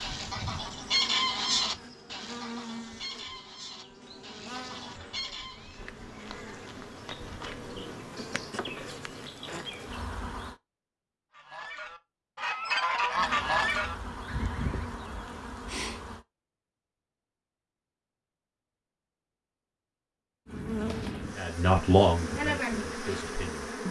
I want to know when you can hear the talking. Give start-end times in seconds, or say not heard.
21.4-23.8.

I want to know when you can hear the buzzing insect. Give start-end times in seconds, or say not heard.
0.0-10.6, 13.2-16.2, 20.4-23.8.